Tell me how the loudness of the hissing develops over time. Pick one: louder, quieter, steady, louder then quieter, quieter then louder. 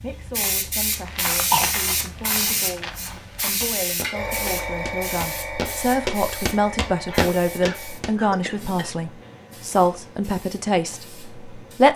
quieter.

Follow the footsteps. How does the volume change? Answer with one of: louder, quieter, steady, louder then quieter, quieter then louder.
louder.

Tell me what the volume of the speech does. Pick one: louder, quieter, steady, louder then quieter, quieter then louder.
louder.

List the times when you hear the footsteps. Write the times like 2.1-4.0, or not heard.
0.9-8.2.